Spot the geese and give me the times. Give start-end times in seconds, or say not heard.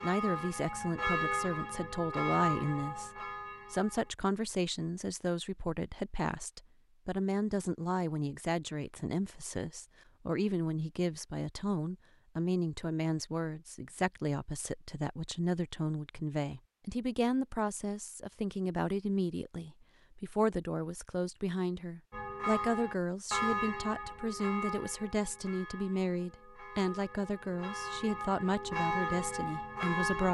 not heard.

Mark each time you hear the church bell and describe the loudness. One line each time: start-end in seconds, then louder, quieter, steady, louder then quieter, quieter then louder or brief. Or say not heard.
0.0-4.1 louder then quieter
22.1-30.2 quieter then louder.